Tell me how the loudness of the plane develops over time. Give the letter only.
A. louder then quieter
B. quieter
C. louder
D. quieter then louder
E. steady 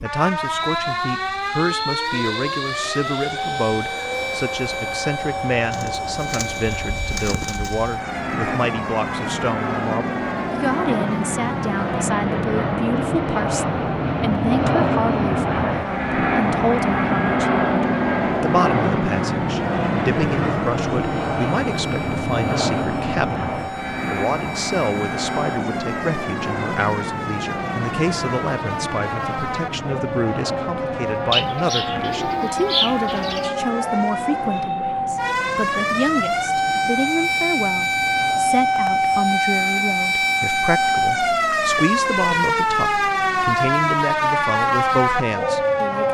A.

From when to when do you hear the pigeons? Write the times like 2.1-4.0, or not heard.
5.7-7.9, 31.3-33.5.